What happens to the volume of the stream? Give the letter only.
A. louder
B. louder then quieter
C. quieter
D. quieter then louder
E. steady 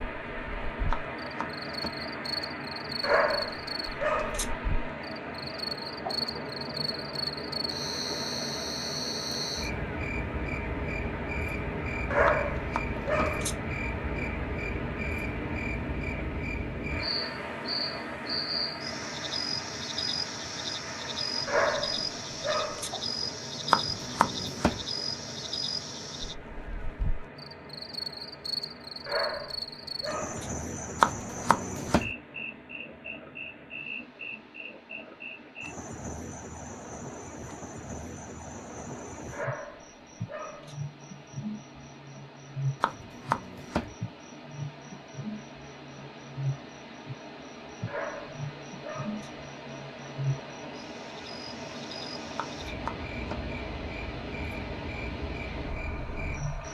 D.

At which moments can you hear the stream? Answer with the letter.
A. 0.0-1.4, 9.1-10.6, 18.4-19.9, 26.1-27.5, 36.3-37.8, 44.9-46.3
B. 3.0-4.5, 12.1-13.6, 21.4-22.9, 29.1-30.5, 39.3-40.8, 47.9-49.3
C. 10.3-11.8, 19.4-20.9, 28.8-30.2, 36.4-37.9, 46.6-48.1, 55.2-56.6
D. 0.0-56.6
D.